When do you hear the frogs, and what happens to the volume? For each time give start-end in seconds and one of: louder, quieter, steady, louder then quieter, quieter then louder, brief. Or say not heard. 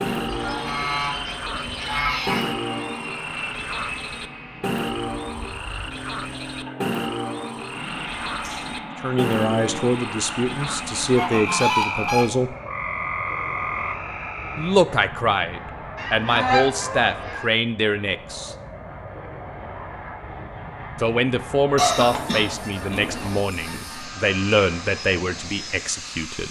0.0-14.8 steady.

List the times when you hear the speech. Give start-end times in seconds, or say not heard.
9.0-12.6, 14.6-18.6, 20.9-26.4.